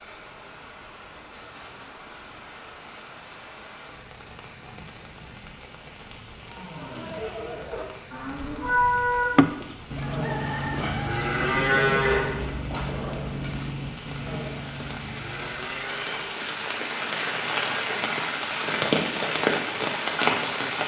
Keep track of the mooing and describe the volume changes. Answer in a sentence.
The loudness of the mooing goes up, then down.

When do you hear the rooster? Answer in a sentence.
The rooster can be heard from 8.9 to 11.8 s.